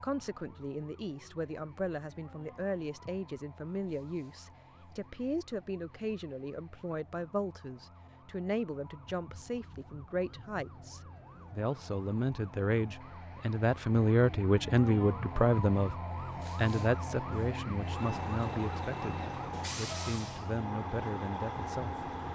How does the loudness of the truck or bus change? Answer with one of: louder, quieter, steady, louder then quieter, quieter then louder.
steady.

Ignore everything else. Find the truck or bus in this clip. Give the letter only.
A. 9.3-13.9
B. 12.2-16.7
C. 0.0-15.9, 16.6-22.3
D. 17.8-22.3
D.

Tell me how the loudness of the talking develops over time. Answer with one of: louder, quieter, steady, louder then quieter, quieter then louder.
louder then quieter.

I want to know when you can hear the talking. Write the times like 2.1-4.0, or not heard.
0.0-15.9, 16.6-22.3.